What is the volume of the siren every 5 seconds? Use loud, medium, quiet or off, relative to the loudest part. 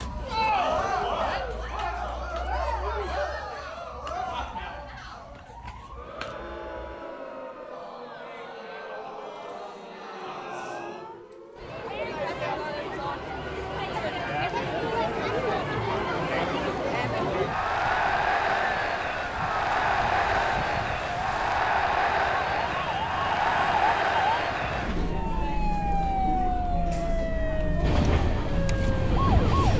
quiet, quiet, quiet, medium, loud, loud.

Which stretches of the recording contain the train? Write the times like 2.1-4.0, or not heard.
27.8-29.7.